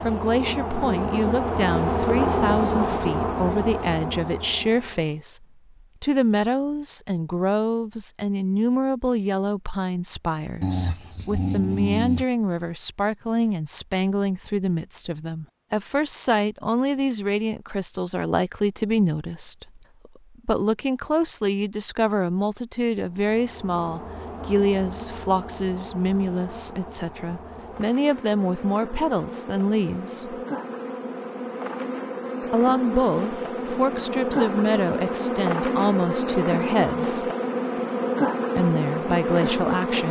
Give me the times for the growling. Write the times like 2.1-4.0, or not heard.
10.6-12.2.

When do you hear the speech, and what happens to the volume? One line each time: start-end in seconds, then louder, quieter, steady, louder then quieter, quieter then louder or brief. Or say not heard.
0.0-30.4 steady
32.5-37.3 steady
38.5-40.0 brief.